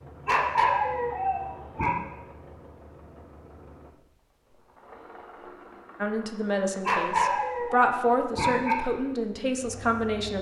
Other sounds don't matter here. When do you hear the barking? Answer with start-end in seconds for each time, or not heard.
0.2-1.9, 6.8-8.8.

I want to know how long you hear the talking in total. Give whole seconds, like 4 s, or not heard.
4 s.